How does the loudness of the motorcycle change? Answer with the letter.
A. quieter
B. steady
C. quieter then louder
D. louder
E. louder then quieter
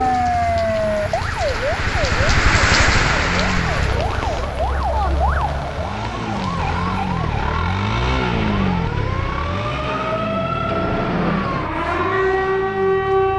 E.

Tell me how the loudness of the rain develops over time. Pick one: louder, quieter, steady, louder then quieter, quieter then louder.
louder then quieter.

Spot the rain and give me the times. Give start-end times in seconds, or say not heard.
0.0-7.5.